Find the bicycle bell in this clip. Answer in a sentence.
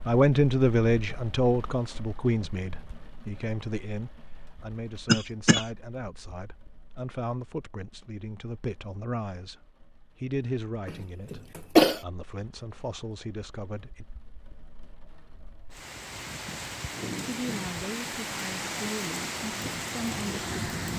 The bicycle bell can't be heard in this clip.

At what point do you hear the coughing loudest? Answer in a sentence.
The loudest moment of the coughing is at 12 seconds.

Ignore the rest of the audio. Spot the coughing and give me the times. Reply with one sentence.
You can hear the coughing from 5.0 to 5.7 s and from 10.8 to 12.0 s.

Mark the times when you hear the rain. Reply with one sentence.
You can hear the rain from 0.0 to 20.9 s.